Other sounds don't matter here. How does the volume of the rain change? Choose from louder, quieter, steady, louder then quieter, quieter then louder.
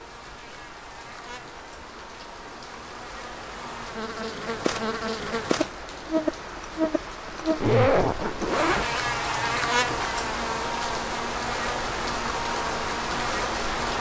louder.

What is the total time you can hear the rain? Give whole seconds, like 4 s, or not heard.
14 s.